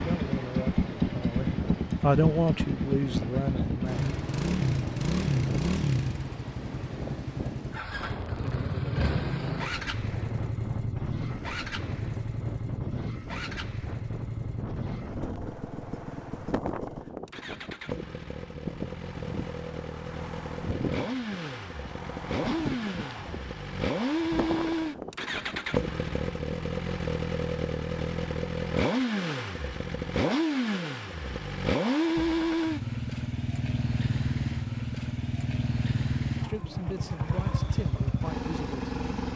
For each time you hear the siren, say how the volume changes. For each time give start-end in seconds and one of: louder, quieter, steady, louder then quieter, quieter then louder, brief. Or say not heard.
not heard.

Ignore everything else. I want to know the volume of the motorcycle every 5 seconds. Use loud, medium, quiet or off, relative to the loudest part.
loud, loud, medium, medium, loud, loud, loud, loud.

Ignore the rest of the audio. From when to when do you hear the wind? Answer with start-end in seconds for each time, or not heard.
0.0-26.7.